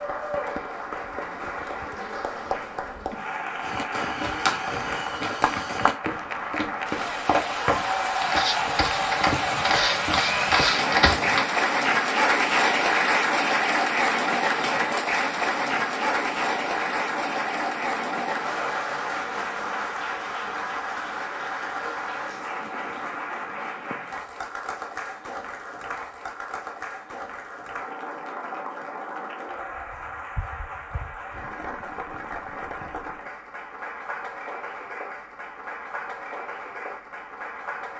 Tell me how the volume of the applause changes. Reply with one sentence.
The volume of the applause goes up, then down.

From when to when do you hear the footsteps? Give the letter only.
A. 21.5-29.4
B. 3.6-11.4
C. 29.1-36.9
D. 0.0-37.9
B.